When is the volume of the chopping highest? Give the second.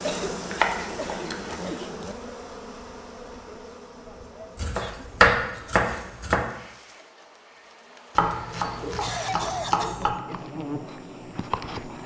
5 s.